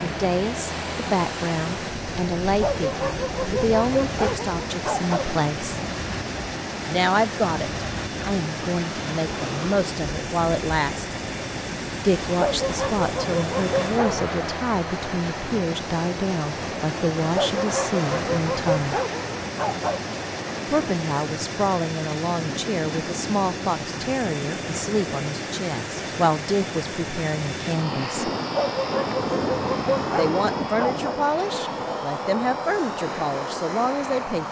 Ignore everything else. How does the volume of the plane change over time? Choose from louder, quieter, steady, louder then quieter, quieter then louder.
steady.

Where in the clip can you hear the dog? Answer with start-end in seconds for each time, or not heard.
2.6-5.3, 12.3-14.3, 17.3-20.0, 28.5-31.1.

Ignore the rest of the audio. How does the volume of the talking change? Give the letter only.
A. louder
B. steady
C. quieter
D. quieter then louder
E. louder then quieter
B.